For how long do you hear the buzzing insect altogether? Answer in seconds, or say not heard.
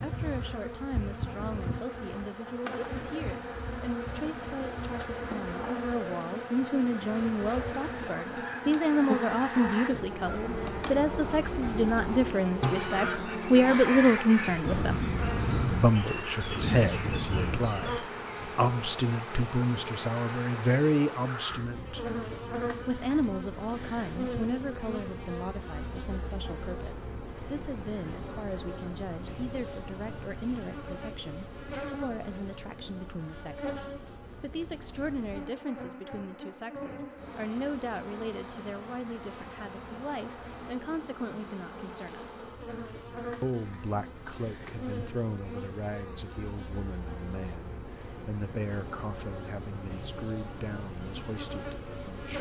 52 s.